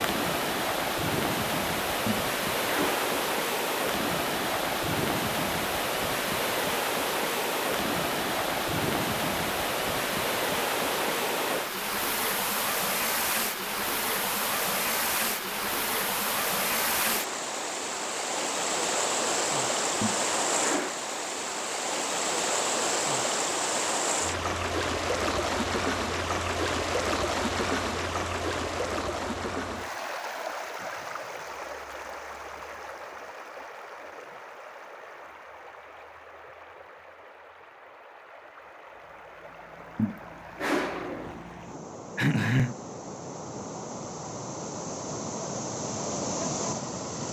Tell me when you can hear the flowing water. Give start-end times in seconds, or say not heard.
0.0-47.2.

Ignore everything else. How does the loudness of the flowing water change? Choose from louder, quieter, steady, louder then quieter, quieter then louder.
quieter.